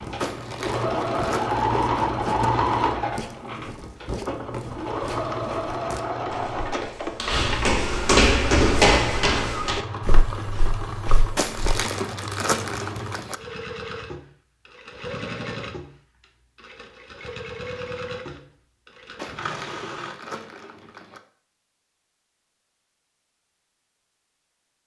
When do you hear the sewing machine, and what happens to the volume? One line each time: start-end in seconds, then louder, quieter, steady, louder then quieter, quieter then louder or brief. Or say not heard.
0.0-20.1 quieter.